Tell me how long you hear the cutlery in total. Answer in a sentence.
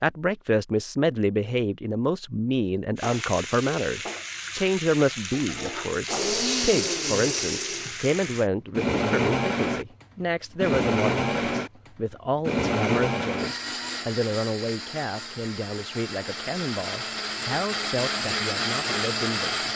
You can't hear the cutlery here.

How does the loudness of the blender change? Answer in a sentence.
The volume of the blender goes down, then up.